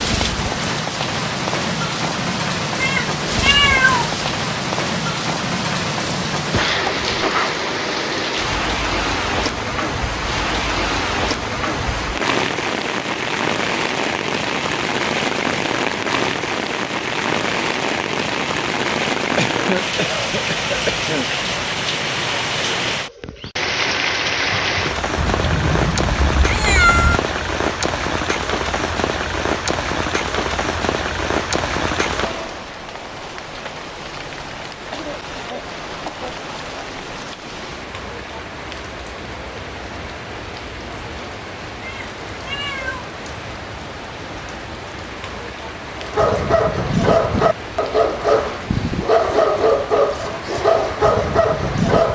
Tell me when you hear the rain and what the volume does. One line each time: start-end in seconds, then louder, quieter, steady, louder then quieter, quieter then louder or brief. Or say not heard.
0.0-52.1 quieter.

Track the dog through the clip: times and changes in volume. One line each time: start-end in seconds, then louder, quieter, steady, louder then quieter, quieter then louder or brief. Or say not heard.
46.0-52.1 steady.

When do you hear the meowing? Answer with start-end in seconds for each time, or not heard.
2.8-4.3, 25.1-27.2, 41.8-43.0.